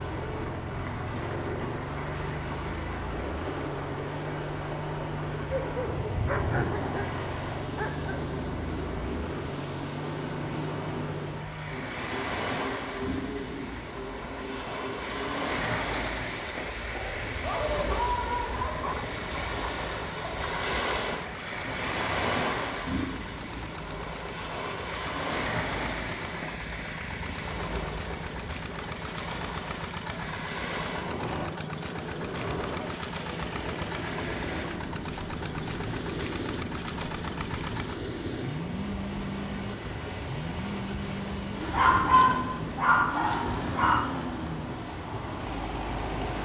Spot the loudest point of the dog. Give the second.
42 s.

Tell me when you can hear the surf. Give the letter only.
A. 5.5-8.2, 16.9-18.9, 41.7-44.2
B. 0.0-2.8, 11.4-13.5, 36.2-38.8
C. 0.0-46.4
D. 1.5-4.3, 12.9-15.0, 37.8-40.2
C.